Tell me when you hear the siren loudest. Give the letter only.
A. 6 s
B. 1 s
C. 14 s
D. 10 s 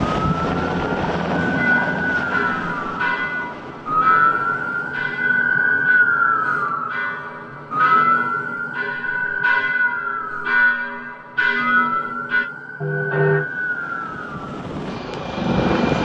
A.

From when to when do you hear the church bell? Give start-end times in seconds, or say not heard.
1.5-13.4.